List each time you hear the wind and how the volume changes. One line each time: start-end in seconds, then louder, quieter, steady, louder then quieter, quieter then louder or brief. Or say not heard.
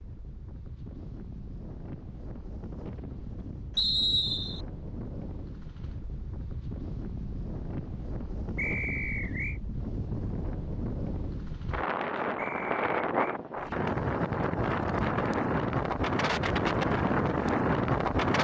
0.0-18.3 louder.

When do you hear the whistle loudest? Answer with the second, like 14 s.
4 s.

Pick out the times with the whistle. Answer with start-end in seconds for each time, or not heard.
3.8-4.6, 8.6-9.6, 12.3-13.4.